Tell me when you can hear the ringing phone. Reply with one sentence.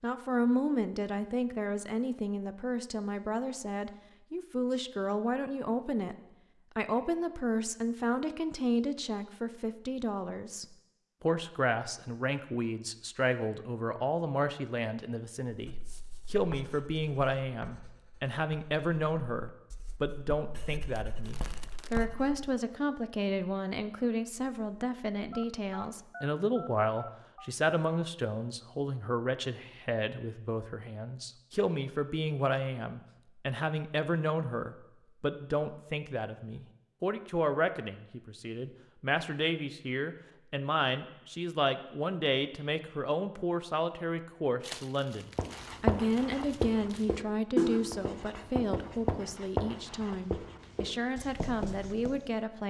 You can hear the ringing phone from 25.3 to 27.5 s.